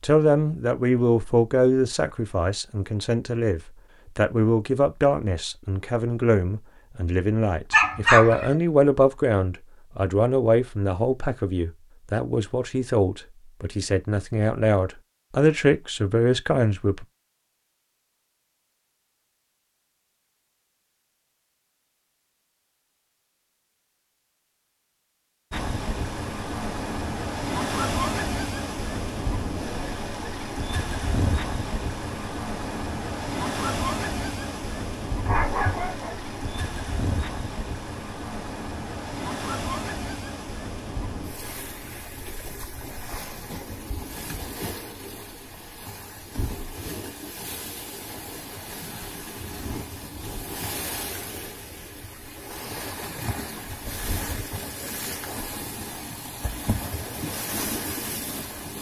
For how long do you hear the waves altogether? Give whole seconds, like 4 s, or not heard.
33 s.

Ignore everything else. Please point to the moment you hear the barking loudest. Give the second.
8 s.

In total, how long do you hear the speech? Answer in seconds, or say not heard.
17 s.